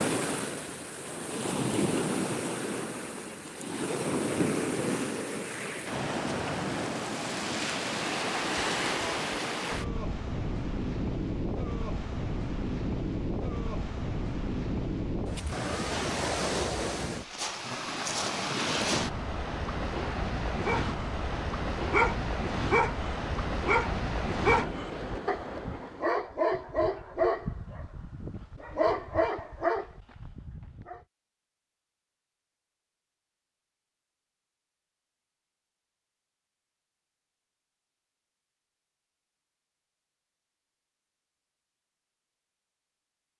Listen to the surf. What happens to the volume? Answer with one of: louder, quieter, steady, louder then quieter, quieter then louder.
steady.